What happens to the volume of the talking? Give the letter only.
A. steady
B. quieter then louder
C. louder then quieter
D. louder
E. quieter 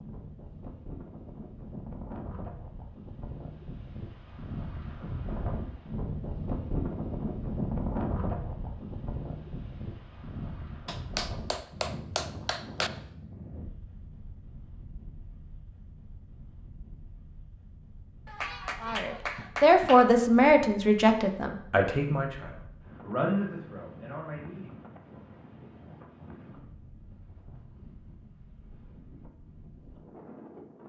E.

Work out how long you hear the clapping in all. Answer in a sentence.
You can hear the clapping for 4 seconds altogether.